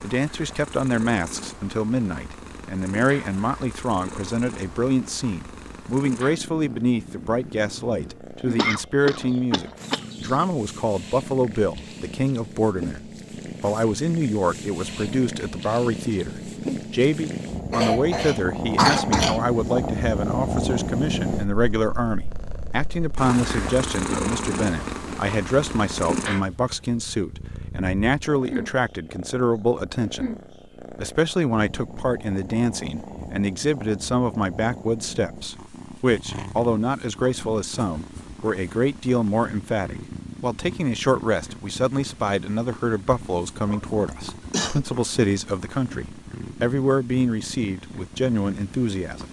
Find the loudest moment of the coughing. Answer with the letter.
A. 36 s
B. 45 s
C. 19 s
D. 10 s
C.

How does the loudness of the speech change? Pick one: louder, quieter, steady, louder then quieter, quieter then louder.
steady.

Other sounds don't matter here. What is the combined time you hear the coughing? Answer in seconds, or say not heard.
4 s.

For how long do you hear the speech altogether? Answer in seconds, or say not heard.
49 s.